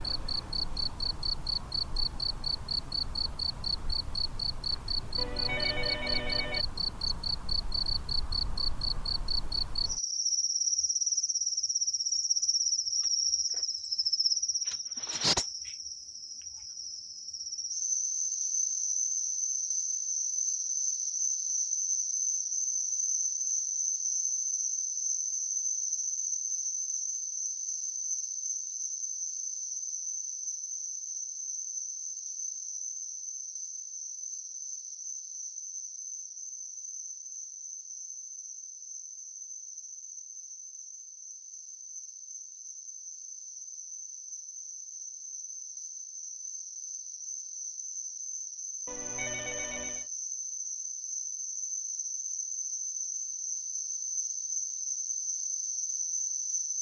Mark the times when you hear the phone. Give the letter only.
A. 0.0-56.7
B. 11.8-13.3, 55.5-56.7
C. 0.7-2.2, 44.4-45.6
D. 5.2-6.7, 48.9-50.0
D.